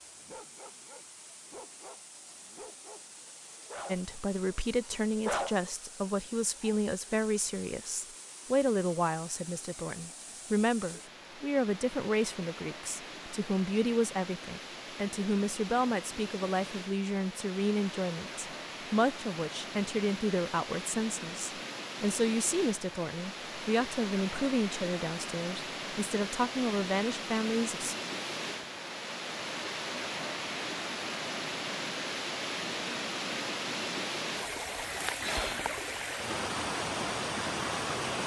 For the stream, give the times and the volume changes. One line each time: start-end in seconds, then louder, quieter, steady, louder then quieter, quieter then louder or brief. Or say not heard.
0.0-38.2 louder.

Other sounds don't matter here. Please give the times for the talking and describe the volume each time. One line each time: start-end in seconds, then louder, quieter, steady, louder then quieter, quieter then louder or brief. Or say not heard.
3.9-27.9 steady.